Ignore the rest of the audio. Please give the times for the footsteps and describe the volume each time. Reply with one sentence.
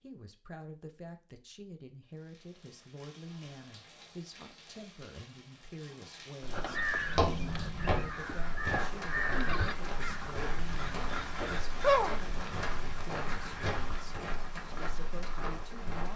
The footsteps can be heard from 7.0 to 16.1 s, getting quieter.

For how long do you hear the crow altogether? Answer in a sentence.
The crow can be heard for 8 seconds in total.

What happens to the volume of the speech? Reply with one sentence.
The volume of the speech stays about the same.